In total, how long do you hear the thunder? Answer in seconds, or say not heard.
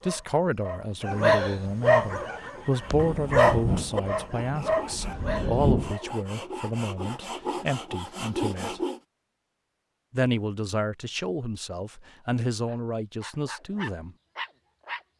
3 s.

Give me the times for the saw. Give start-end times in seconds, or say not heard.
1.9-9.0.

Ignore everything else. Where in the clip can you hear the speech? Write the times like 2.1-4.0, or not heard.
0.0-8.8, 10.1-14.1.